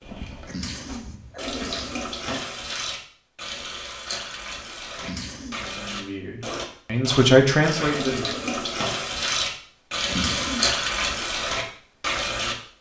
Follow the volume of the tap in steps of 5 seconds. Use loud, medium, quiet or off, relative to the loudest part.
medium, loud, loud.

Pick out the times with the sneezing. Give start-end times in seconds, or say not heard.
0.5-2.4, 5.0-5.7, 10.1-10.8.